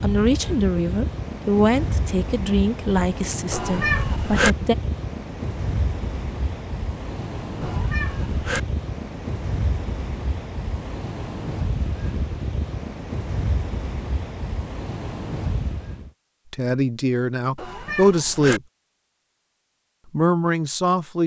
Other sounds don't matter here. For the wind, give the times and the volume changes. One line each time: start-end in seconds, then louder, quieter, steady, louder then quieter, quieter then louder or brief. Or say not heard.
0.0-16.1 steady.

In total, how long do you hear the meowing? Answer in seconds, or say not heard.
3 s.